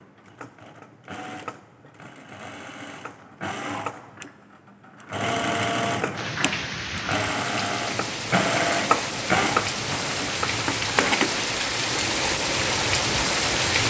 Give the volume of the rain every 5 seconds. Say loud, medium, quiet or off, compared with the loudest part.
off, medium, loud.